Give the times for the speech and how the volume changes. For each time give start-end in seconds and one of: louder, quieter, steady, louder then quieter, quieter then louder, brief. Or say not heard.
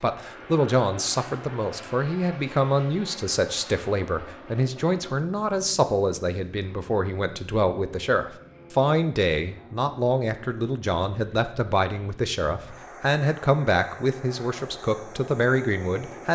0.0-16.3 steady.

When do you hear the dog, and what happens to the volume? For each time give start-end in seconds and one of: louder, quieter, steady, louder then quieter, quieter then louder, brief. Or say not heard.
not heard.